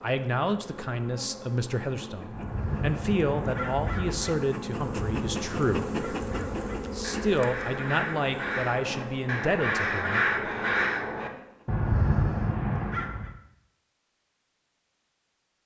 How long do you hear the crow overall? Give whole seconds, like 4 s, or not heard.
11 s.